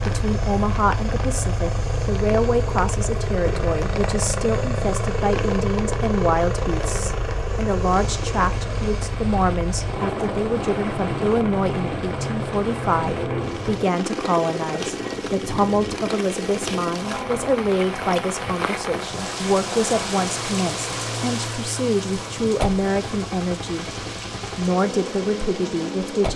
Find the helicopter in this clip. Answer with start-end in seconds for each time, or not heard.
0.0-26.3.